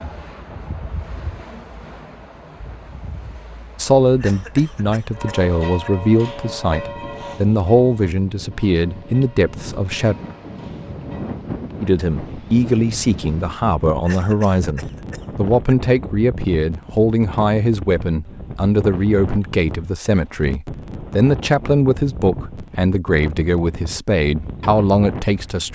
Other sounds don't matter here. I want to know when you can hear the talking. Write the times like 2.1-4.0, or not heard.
3.8-10.2, 11.8-25.6.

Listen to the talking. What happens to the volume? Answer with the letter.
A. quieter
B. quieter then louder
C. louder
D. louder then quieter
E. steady
E.